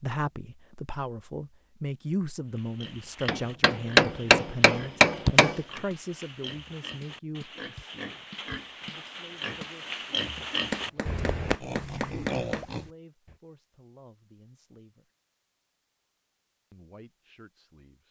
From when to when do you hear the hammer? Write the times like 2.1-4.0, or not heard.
3.2-5.6, 10.7-12.7.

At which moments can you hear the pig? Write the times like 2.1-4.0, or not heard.
2.5-13.3.